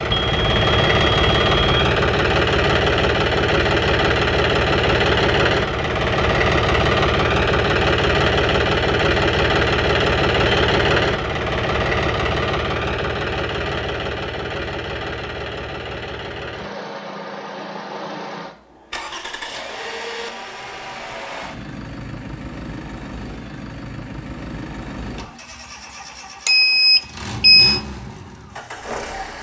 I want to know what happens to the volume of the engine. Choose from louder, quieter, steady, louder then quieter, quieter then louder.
quieter.